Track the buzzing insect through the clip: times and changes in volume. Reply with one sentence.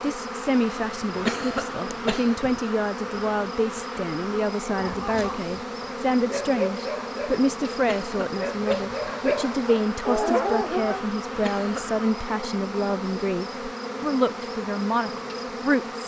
You can hear the buzzing insect from 0.0 to 16.0 s, at a steady volume.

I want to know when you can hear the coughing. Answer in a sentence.
You can hear the coughing from 1.1 to 2.5 s, from 7.8 to 8.9 s and from 11.3 to 12.0 s.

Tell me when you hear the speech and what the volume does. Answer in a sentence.
You can hear the speech from 0.0 to 16.0 s, at a steady volume.